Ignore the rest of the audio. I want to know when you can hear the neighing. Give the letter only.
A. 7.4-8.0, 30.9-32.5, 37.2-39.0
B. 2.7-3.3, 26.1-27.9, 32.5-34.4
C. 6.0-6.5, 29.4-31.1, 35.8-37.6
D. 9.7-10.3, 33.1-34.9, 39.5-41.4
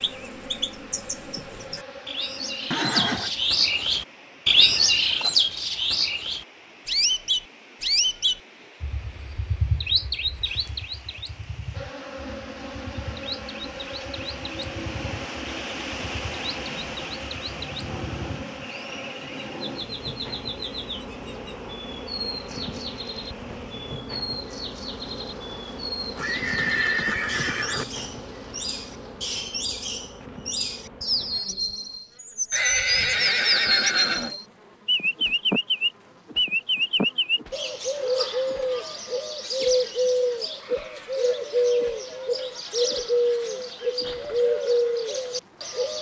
B.